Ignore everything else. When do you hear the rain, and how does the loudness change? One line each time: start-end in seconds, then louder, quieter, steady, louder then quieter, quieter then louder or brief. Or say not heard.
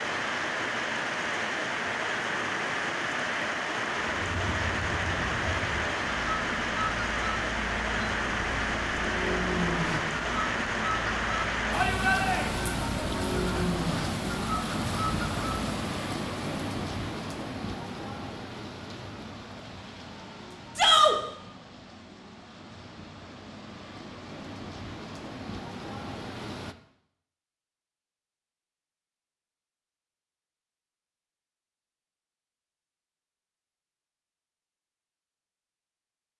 0.0-26.8 quieter.